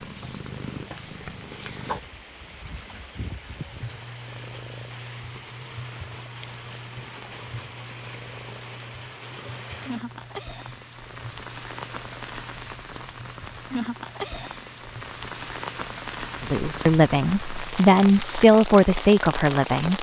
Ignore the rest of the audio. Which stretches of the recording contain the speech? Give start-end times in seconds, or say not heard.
16.4-19.9.